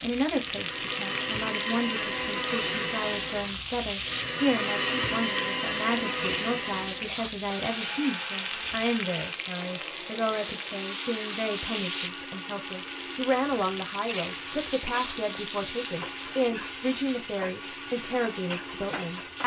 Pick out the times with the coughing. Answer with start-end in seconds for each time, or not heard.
not heard.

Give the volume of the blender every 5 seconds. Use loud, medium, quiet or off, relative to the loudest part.
loud, loud, medium, medium.